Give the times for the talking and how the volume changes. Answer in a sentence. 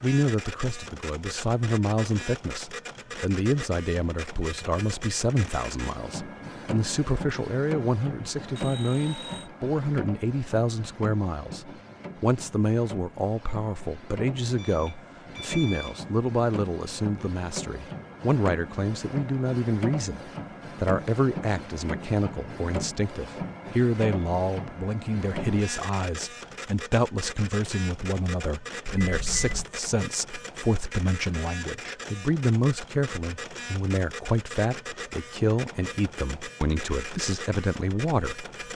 The talking can be heard from 0.0 to 38.5 s, at a steady volume.